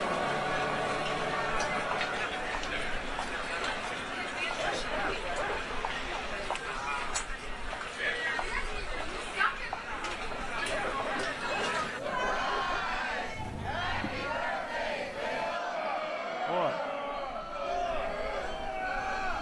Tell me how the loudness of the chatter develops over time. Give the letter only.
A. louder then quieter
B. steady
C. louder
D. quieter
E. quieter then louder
B.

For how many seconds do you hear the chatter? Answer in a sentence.
The chatter can be heard for 19 seconds in total.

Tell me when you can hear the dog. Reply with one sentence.
You can hear the dog from 4.5 to 5.7 s and from 10.6 to 12.8 s.